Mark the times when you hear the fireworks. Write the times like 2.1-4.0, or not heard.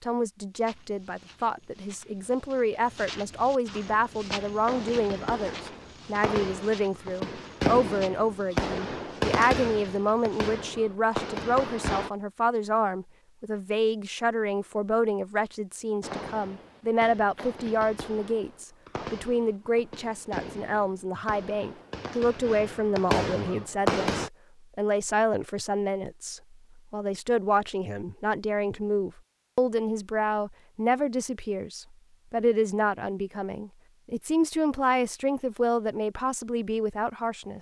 3.8-12.1, 16.0-24.3.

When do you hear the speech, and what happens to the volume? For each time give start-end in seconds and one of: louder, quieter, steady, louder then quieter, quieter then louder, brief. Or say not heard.
0.0-37.5 steady.